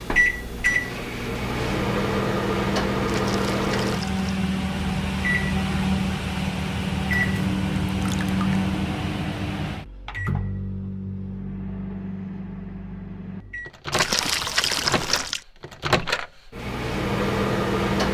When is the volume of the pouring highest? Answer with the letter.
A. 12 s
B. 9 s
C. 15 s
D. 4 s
C.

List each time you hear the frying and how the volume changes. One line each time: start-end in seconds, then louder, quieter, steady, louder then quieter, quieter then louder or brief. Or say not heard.
not heard.